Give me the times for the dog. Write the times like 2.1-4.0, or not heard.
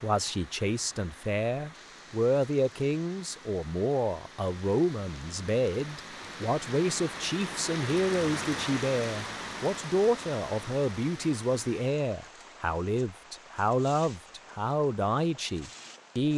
not heard.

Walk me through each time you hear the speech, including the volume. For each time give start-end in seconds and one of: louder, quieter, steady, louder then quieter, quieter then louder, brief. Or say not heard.
0.0-16.3 steady.